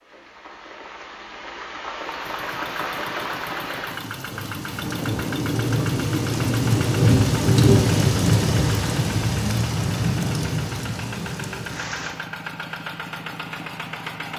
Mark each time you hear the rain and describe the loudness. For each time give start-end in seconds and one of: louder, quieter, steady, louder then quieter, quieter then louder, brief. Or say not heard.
0.0-12.2 louder then quieter.